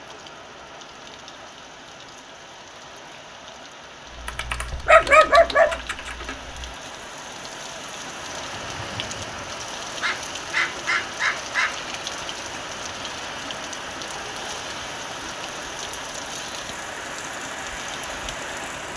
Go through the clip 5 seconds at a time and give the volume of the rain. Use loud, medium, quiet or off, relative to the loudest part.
medium, loud, loud, loud.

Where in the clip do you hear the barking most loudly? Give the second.
5 s.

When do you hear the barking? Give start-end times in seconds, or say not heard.
4.8-6.1, 10.0-11.8.